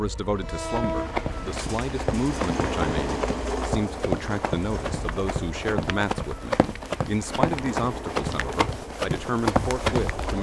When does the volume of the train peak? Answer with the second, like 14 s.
3 s.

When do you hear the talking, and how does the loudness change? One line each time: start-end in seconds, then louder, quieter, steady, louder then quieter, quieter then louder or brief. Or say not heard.
0.0-10.3 steady.